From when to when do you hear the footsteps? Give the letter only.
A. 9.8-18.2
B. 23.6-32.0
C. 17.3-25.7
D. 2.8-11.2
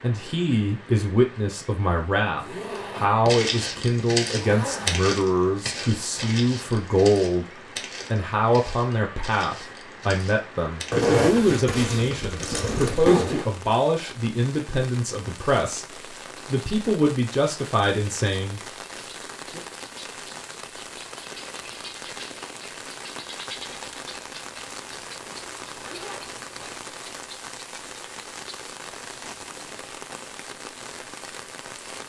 D.